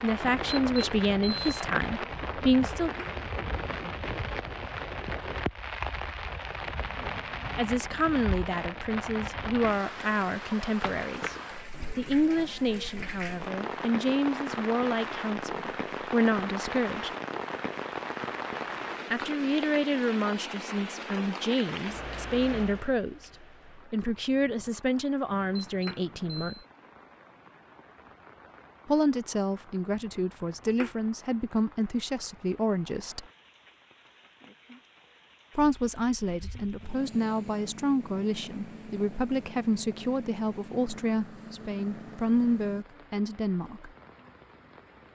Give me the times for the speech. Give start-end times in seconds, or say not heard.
0.0-2.9, 7.5-11.3, 11.9-17.1, 19.1-26.6, 28.9-33.2, 35.5-43.9.